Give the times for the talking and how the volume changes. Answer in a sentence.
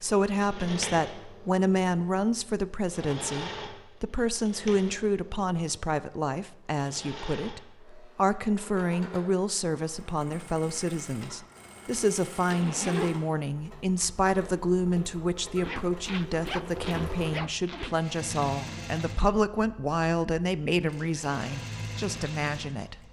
You can hear the talking from 0.0 to 22.9 s, at a steady volume.